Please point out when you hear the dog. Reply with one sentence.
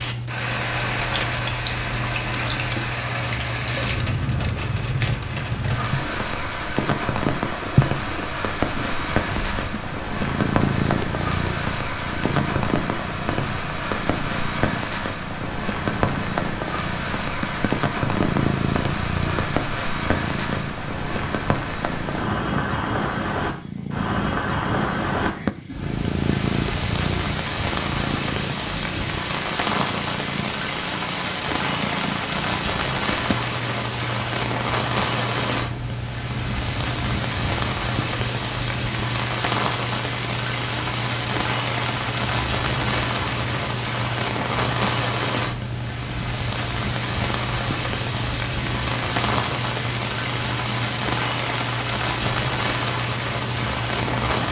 You can't hear the dog here.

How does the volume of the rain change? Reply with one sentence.
The loudness of the rain stays about the same.